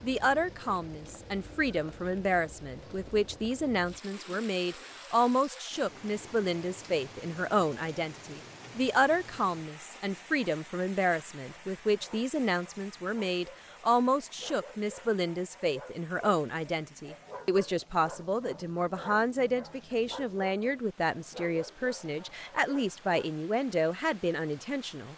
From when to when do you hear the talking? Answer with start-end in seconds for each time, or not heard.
0.0-25.1.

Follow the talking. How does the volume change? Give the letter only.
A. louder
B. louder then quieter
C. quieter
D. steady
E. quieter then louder
D.